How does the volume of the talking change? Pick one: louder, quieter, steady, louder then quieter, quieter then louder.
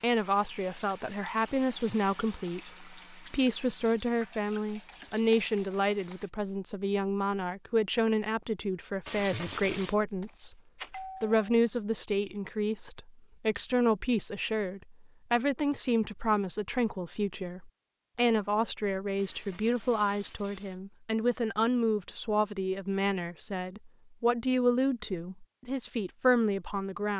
steady.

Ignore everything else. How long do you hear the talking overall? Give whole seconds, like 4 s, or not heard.
27 s.